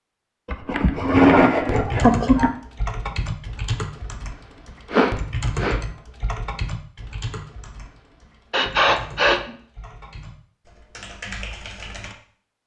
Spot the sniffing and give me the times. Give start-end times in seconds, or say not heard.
0.5-2.5, 4.9-5.8, 8.5-9.5.